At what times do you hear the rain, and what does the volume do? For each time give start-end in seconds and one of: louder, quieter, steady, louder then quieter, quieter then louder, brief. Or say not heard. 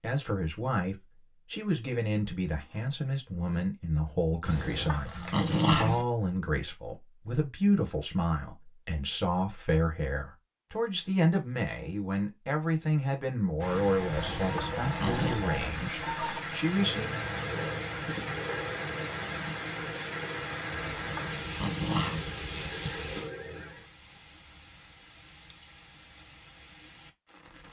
13.6-27.6 quieter.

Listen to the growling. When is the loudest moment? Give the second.
6 s.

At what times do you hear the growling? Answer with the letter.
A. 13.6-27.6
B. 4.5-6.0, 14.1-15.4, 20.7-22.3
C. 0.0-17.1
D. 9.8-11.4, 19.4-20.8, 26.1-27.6
B.